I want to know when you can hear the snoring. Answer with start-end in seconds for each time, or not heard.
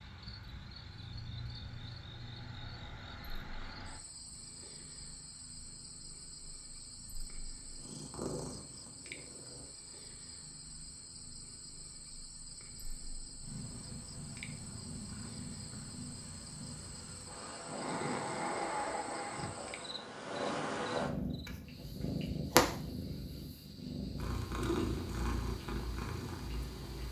17.6-19.6.